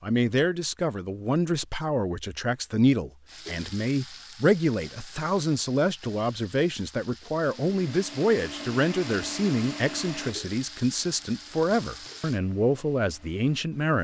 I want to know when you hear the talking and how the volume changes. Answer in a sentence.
You can hear the talking from 0.0 to 14.0 s, at a steady volume.